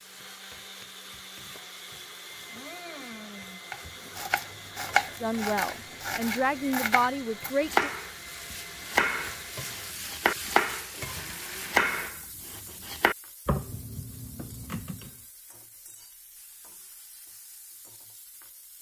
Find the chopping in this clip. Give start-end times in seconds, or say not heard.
3.7-15.1.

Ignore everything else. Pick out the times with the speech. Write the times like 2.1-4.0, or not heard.
5.2-7.9.